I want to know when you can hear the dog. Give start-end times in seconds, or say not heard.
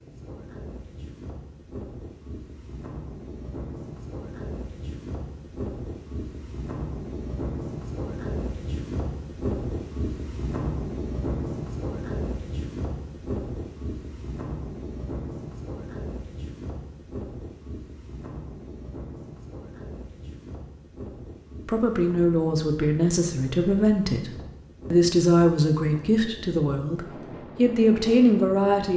not heard.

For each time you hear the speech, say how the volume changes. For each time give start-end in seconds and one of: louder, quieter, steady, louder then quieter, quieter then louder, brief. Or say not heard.
21.6-24.3 brief
24.9-28.9 quieter then louder.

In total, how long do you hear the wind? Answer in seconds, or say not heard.
29 s.